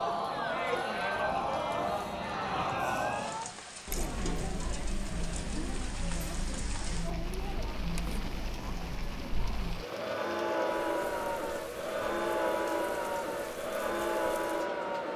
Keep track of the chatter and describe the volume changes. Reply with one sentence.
The loudness of the chatter goes down, then up.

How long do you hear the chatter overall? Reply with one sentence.
The chatter can be heard for 15 seconds in total.